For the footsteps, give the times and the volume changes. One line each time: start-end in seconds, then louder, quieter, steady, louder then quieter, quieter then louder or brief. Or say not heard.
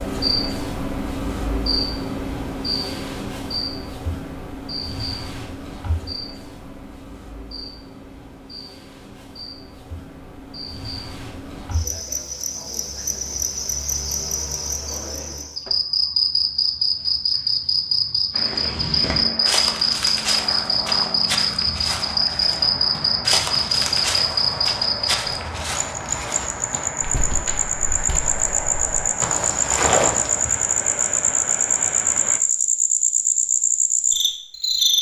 18.4-30.6 quieter then louder.